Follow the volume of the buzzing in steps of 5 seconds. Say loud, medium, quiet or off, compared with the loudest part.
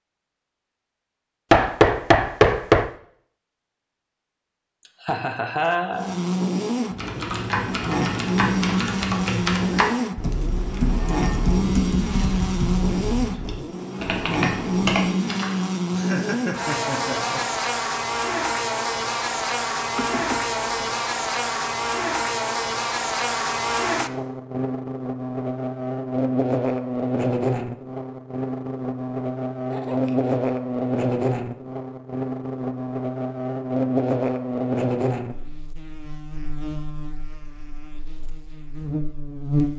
off, loud, loud, loud, loud, loud, loud, medium.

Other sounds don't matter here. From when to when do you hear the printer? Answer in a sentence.
You can't hear the printer here.